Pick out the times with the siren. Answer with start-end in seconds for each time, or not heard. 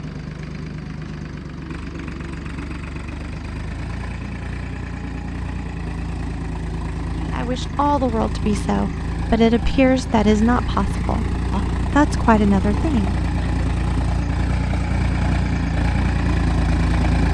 not heard.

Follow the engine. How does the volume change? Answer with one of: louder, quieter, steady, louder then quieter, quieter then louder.
louder.